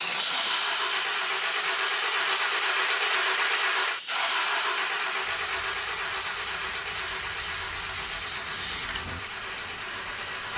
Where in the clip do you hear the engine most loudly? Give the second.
3 s.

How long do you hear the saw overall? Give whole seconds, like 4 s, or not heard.
not heard.